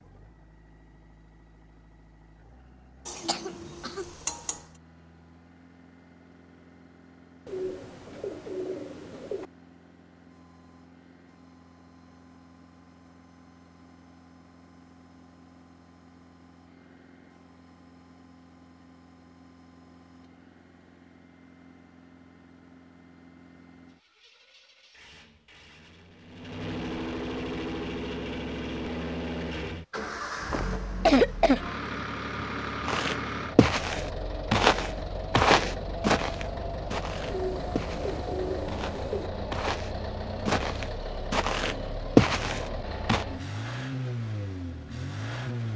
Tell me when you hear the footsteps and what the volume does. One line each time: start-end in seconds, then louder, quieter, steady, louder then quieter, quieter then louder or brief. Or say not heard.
32.9-43.2 quieter then louder.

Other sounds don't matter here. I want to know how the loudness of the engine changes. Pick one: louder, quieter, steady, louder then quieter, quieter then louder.
louder.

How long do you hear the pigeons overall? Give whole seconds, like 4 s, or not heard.
4 s.